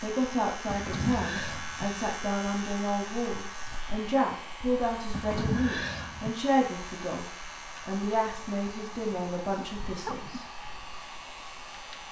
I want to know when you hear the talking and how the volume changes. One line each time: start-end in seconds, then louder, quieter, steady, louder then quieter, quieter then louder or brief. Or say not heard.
0.0-7.2 steady
7.8-10.5 brief.